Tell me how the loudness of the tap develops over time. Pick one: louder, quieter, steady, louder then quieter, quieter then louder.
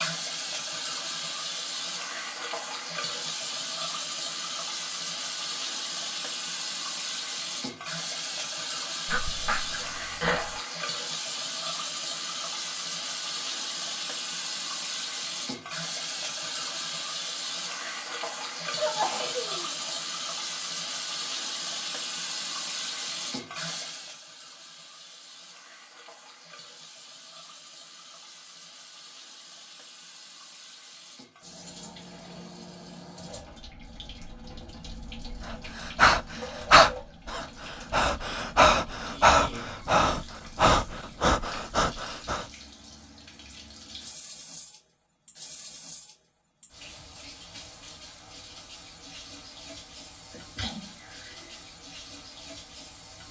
quieter.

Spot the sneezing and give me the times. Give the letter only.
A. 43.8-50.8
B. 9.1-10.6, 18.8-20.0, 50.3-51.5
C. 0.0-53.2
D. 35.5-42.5
B.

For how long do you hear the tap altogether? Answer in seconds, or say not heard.
53 s.